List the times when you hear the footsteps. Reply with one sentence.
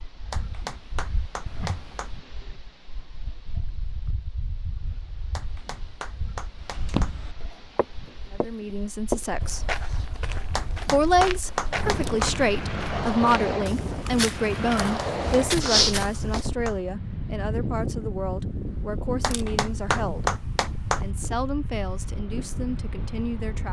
The footsteps can be heard from 6.5 to 16.4 s.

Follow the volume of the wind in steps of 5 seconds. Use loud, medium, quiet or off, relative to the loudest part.
quiet, quiet, loud, loud, medium.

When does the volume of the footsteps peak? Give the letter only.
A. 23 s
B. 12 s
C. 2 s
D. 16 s
D.